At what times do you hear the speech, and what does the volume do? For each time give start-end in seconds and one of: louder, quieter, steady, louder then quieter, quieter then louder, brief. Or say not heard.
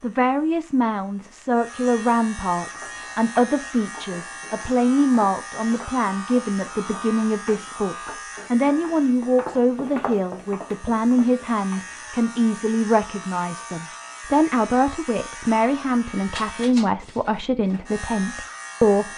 0.0-19.1 steady.